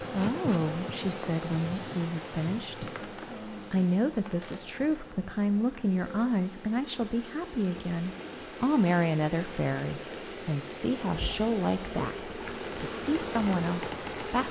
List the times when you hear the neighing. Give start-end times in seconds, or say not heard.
not heard.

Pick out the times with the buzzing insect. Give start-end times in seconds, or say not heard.
0.0-14.4.